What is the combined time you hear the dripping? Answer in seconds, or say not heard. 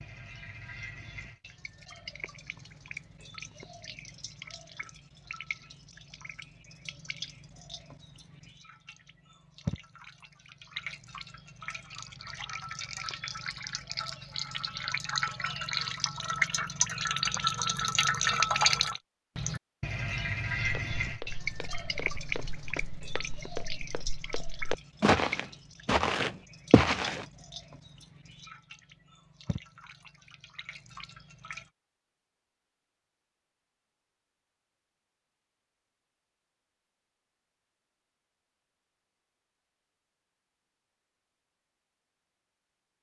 32 s.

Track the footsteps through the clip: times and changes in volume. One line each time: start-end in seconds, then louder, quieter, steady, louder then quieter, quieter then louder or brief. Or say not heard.
20.6-27.2 louder.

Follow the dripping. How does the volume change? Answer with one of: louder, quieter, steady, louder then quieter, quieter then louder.
louder then quieter.